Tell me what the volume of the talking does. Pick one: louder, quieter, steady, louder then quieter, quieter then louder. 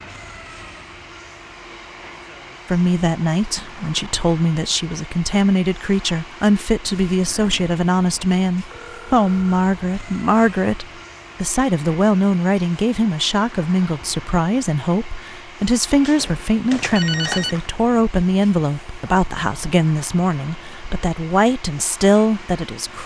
steady.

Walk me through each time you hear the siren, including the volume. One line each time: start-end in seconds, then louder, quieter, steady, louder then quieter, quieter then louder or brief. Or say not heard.
not heard.